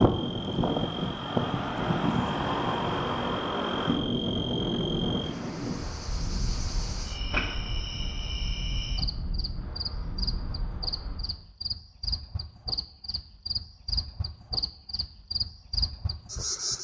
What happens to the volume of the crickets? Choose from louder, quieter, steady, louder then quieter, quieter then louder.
louder.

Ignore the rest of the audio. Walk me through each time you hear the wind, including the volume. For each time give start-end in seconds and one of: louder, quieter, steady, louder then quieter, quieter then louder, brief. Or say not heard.
0.0-11.4 quieter.